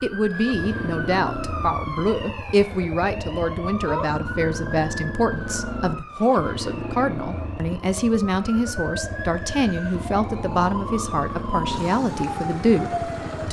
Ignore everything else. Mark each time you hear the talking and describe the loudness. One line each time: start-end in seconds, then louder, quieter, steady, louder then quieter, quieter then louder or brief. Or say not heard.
0.0-13.4 steady.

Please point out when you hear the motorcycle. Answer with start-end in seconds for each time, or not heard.
0.1-13.4.